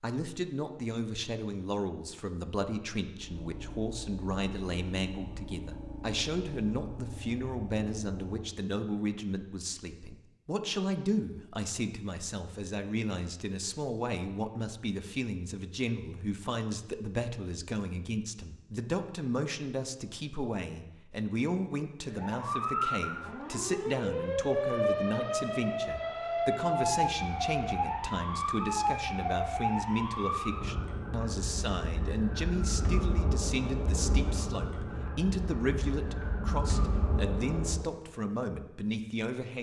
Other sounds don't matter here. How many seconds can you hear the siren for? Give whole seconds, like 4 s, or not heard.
16 s.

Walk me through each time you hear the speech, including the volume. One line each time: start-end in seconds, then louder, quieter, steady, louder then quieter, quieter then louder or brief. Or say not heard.
0.0-39.5 steady.